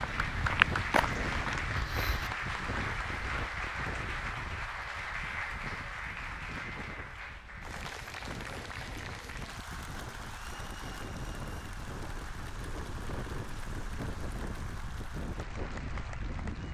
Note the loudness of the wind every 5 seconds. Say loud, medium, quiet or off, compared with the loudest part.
loud, medium, loud, loud.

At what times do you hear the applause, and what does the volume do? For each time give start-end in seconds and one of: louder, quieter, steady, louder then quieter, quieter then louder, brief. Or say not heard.
0.0-16.6 quieter.